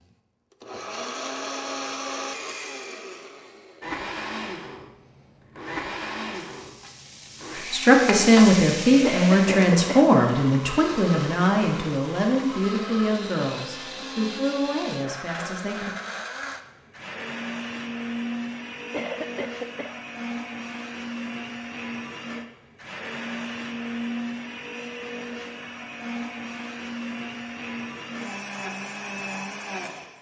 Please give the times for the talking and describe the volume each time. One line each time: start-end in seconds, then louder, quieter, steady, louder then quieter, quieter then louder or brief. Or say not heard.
7.7-15.9 quieter.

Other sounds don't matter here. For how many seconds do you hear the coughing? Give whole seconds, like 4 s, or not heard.
2 s.